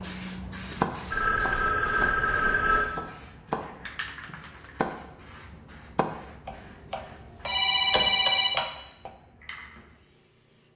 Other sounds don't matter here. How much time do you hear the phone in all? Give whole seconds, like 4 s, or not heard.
3 s.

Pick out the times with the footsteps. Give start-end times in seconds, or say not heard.
not heard.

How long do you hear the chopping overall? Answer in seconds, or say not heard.
8 s.